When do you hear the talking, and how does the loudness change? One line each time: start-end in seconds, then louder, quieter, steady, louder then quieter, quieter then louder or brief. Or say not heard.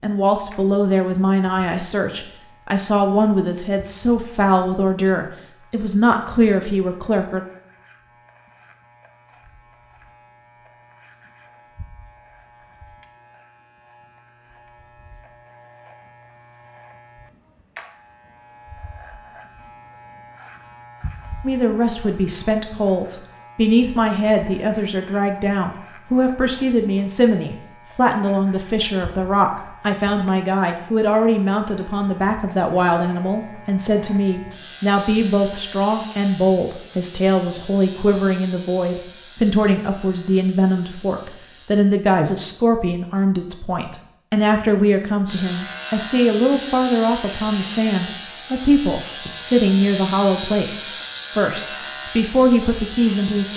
0.0-7.4 steady
21.4-53.5 steady.